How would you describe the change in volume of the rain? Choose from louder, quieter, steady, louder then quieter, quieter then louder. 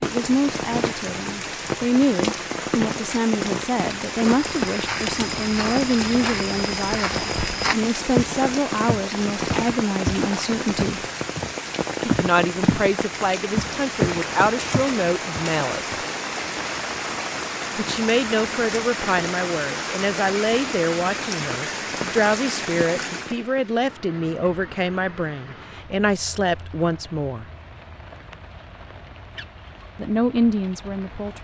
quieter.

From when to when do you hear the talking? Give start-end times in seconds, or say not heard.
0.0-11.0, 12.1-15.9, 17.8-27.4, 29.9-31.3.